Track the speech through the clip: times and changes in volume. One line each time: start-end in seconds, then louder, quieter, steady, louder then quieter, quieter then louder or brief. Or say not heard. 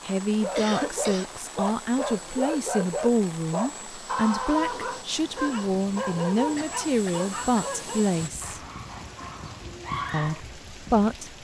0.1-8.6 steady
10.1-11.3 brief.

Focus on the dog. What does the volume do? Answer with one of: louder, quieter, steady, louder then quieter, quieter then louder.
quieter.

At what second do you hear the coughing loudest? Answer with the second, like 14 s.
1 s.